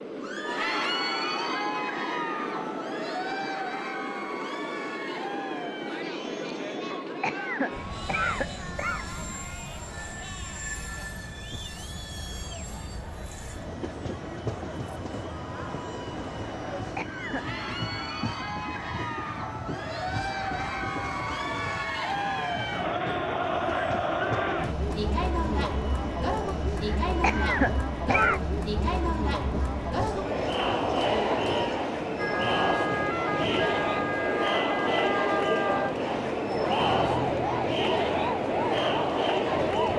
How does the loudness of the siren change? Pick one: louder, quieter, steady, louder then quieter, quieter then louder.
steady.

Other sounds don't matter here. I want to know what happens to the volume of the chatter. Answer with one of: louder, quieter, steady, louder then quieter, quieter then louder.
quieter then louder.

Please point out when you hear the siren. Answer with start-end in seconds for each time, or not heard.
32.1-39.9.